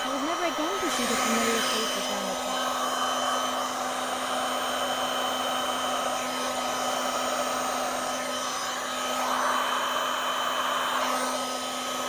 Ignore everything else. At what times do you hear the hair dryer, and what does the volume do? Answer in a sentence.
The hair dryer can be heard from 0.0 to 12.0 s, at a steady volume.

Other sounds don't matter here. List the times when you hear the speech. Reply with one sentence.
You can hear the speech from 0.0 to 2.5 s.